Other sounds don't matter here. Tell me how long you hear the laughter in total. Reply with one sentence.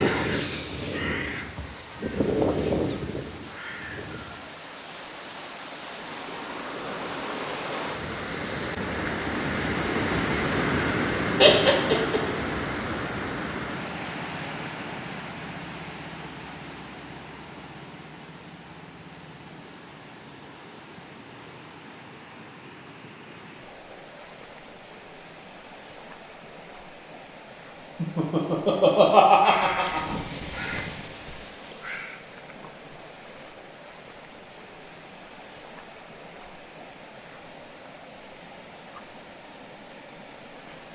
The laughter can be heard for 3 seconds in total.